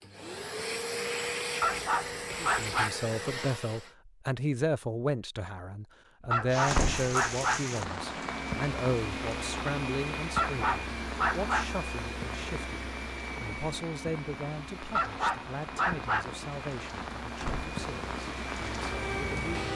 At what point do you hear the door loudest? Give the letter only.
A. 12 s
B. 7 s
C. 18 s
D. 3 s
B.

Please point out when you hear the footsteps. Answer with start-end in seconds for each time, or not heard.
not heard.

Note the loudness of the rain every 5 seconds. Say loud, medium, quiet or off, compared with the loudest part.
off, loud, medium, loud.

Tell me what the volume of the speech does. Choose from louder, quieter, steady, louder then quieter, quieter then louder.
quieter.